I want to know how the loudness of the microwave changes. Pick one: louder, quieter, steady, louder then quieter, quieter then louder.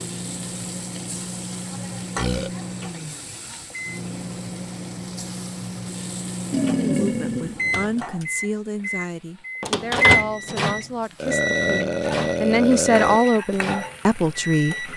louder then quieter.